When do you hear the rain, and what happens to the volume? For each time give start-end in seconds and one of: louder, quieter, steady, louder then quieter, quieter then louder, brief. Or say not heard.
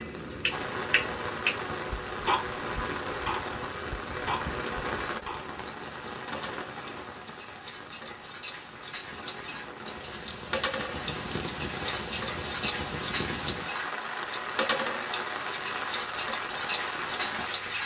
0.0-17.8 quieter then louder.